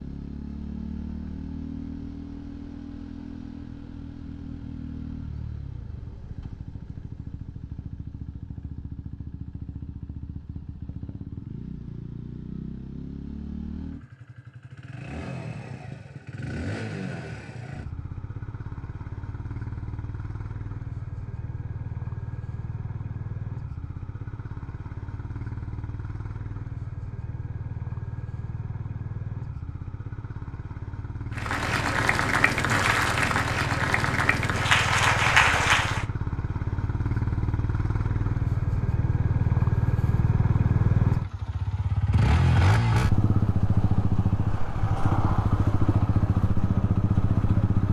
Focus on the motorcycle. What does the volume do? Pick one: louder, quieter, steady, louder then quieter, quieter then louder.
louder.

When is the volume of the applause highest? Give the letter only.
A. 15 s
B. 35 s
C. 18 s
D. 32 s
B.